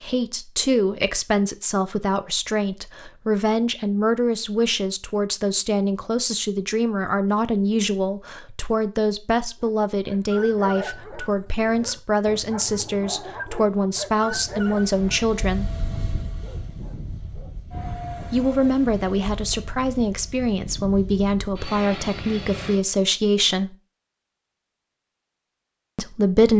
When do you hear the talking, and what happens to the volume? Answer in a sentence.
You can hear the talking from 0.0 to 15.7 s, at a steady volume; from 18.3 to 23.8 s, at a steady volume; and briefly from 25.9 to 26.5 s.